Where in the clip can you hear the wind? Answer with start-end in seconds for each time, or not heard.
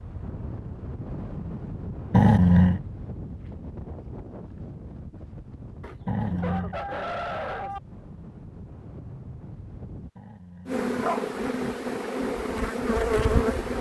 0.0-10.1.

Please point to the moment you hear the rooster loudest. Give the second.
7 s.